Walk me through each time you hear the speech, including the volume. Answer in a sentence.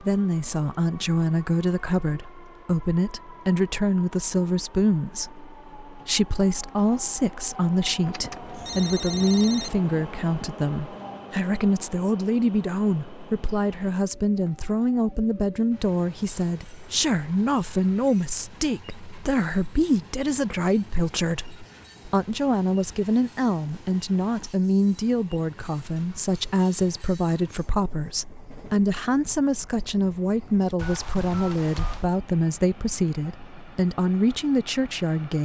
You can hear the speech from 0.0 to 35.3 s, at a steady volume.